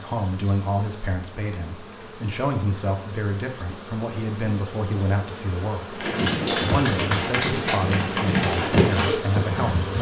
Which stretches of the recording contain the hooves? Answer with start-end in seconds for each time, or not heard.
6.0-9.9.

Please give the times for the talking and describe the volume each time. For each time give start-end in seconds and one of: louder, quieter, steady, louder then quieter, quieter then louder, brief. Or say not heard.
0.0-9.9 steady.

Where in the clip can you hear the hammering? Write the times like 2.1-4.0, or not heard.
6.2-7.8.